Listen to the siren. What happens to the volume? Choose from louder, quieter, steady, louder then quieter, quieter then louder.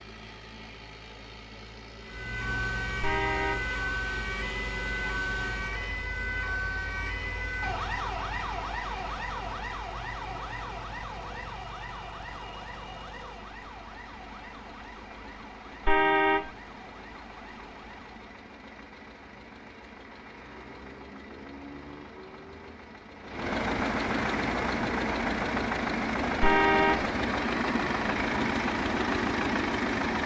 quieter.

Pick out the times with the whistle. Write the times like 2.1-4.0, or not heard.
not heard.